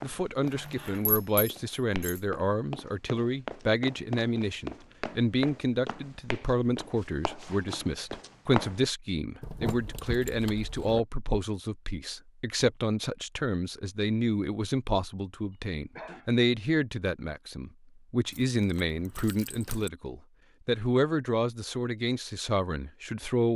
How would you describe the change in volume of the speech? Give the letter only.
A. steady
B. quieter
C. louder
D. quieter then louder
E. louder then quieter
A.